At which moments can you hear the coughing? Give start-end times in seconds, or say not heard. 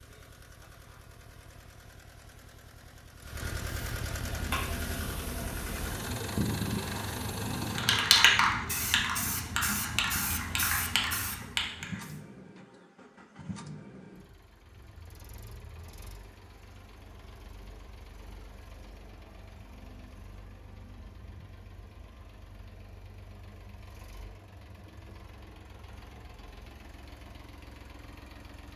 not heard.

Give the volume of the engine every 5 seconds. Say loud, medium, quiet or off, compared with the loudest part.
medium, loud, medium, quiet, quiet, quiet.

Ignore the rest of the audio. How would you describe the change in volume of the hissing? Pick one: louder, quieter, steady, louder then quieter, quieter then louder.
louder then quieter.